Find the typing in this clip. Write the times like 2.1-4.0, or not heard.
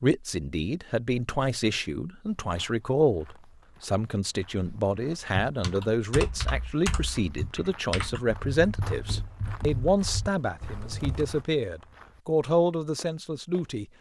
5.5-11.4.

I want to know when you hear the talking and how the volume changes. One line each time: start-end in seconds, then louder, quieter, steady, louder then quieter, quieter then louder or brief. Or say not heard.
0.0-13.8 steady.